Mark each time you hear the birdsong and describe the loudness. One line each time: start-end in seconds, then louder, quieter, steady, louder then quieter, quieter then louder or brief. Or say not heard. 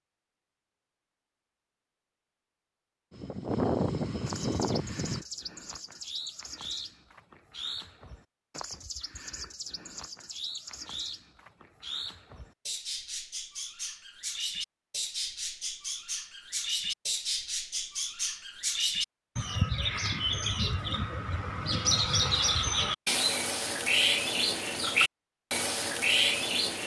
4.2-26.8 louder.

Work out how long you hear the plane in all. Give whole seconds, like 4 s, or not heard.
2 s.